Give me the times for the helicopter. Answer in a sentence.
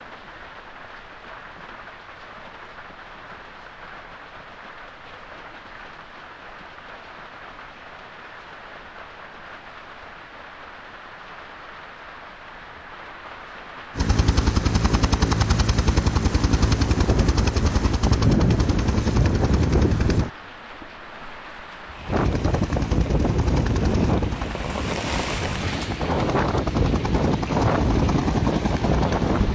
The helicopter can be heard from 13.9 to 20.3 s and from 22.1 to 29.5 s.